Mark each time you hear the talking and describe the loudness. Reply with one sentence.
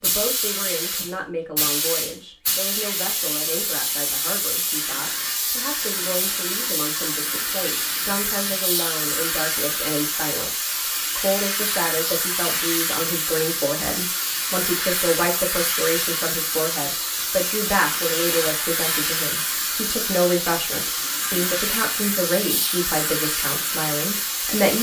You can hear the talking from 0.0 to 24.7 s, getting louder.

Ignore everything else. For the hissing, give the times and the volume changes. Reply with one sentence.
The hissing can be heard from 0.0 to 24.7 s, at a steady volume.